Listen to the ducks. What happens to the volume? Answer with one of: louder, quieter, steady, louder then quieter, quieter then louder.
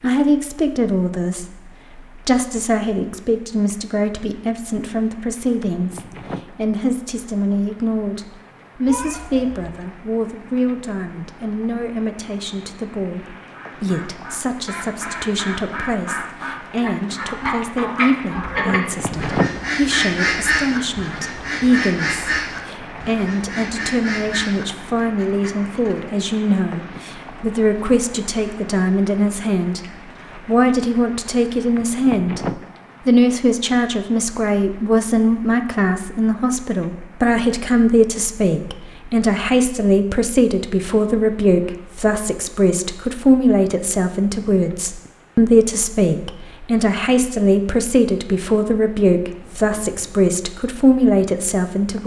louder then quieter.